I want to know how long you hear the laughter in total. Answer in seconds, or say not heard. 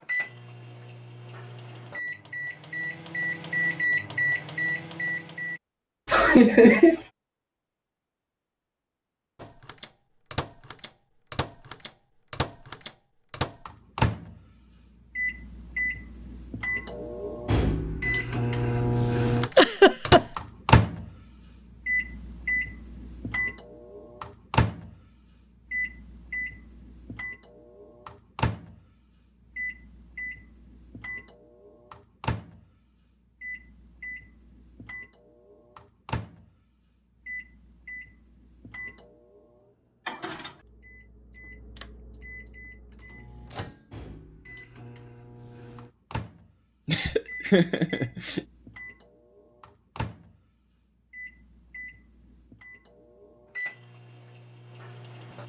3 s.